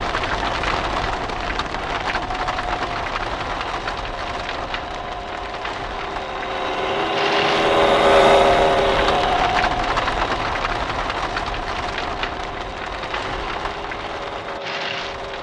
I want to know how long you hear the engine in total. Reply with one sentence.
You can hear the engine for 15 seconds altogether.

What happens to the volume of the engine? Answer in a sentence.
The volume of the engine goes up, then down.